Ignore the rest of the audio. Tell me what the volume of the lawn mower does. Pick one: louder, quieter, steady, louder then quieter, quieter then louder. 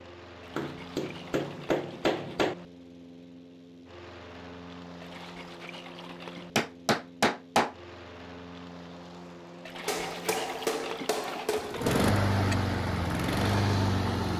louder.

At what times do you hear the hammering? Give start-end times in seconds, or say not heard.
0.6-2.5, 6.5-7.8, 9.8-12.0.